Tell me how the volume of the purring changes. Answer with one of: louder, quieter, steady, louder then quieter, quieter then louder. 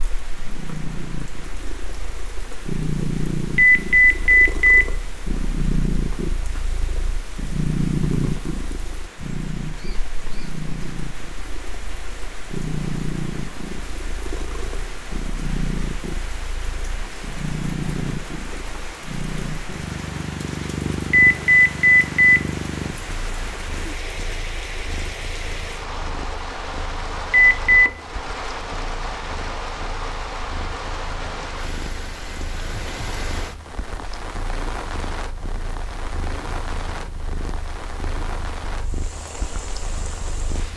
quieter.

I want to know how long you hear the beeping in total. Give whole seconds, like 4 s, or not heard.
3 s.